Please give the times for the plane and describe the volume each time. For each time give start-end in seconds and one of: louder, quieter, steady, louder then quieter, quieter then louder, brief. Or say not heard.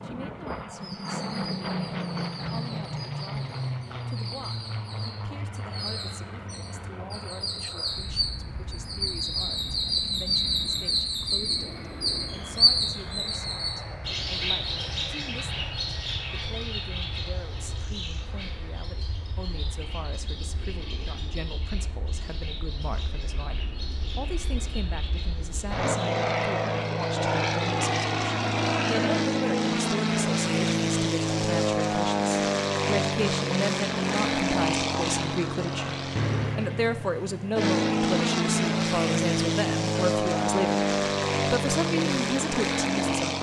0.0-43.3 quieter then louder.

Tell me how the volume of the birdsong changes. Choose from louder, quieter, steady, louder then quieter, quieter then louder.
louder then quieter.